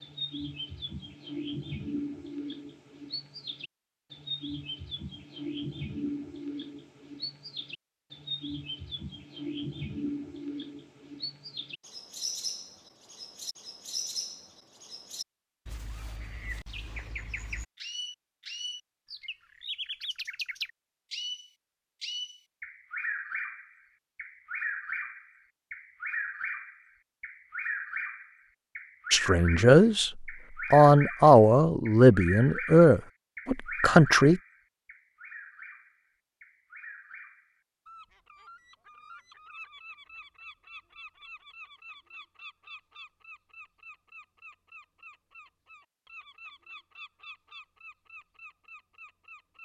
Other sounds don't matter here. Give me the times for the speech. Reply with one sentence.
The speech can be heard from 29.1 to 34.4 s.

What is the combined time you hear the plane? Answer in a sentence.
The plane can't be heard in this clip.